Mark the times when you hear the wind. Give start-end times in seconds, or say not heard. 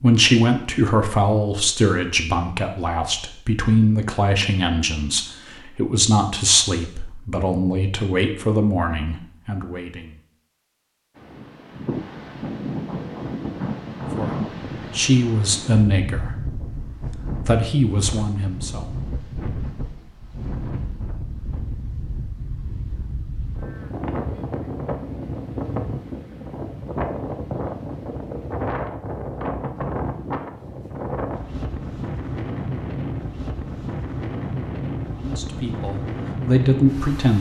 11.2-37.3.